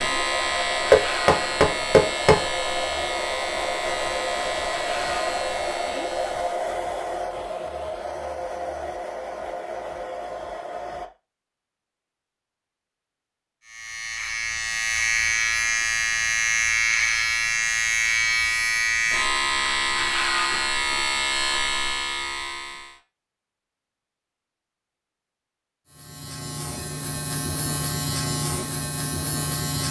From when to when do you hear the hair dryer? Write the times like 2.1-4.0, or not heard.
0.0-11.1.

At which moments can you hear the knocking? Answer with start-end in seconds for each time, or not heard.
0.9-2.4.